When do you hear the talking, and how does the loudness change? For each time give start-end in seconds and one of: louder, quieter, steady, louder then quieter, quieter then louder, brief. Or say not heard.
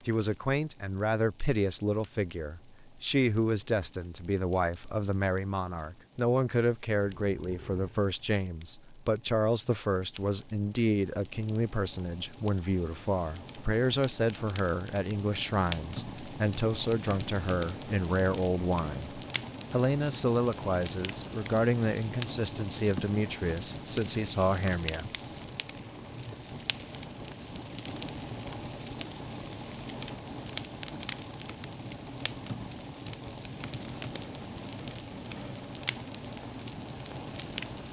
0.1-25.1 steady.